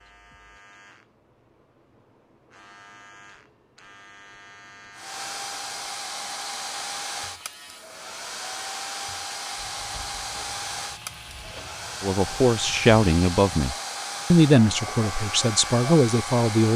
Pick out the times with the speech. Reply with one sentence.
You can hear the speech from 12.0 to 16.7 s.